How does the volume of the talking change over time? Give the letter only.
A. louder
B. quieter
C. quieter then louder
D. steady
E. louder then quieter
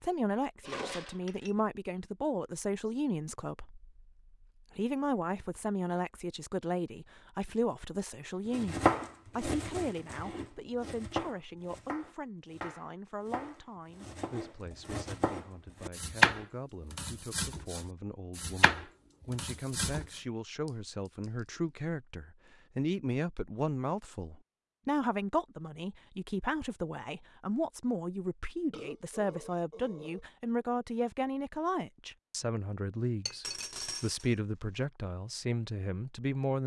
C.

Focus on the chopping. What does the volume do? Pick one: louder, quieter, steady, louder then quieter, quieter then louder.
louder then quieter.